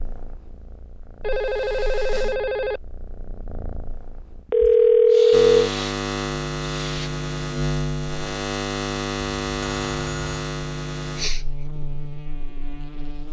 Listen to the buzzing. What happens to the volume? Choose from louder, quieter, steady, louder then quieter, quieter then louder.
quieter.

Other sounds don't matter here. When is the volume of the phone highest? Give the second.
5 s.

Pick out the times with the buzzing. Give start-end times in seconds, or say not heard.
5.3-13.2.